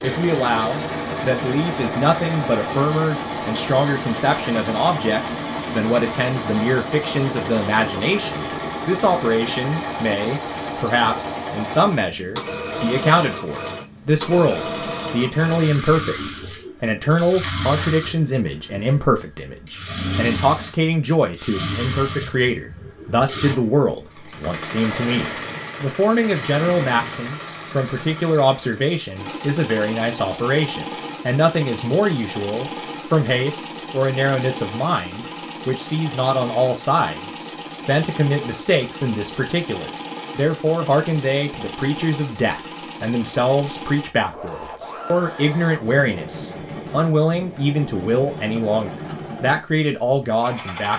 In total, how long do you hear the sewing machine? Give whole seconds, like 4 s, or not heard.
51 s.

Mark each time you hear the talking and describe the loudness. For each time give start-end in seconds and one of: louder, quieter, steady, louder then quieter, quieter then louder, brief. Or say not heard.
0.0-50.9 steady.